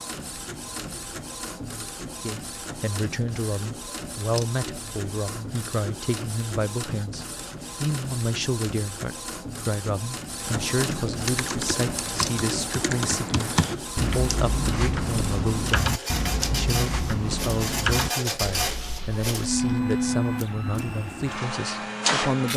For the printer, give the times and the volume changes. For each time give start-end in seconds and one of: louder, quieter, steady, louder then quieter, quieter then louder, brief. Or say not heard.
0.0-22.5 louder.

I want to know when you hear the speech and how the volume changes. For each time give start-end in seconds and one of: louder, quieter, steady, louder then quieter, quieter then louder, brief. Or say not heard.
2.2-22.5 steady.